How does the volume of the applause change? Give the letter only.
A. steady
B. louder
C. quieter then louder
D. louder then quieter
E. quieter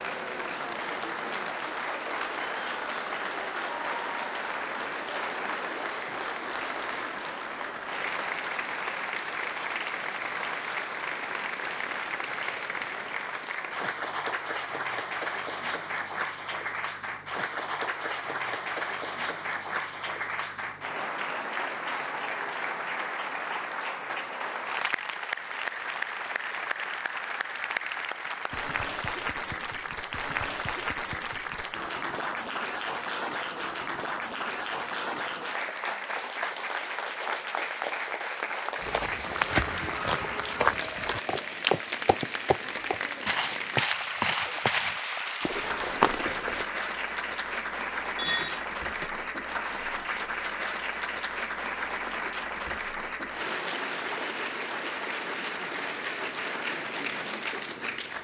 A.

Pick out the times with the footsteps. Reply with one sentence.
You can hear the footsteps from 38.8 to 46.6 s.